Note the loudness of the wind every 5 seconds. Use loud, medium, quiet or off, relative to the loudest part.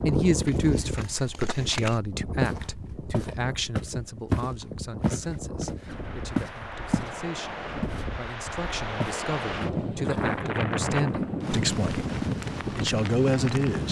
medium, medium, loud.